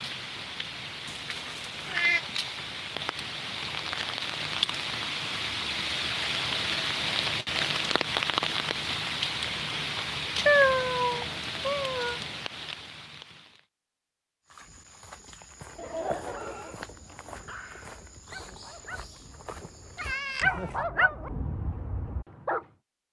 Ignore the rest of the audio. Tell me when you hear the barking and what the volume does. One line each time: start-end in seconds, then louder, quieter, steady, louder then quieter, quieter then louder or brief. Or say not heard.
16.2-22.6 louder then quieter.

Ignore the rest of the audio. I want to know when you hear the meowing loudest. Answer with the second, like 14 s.
11 s.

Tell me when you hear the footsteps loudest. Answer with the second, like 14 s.
16 s.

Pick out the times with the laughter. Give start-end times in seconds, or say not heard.
15.8-17.2.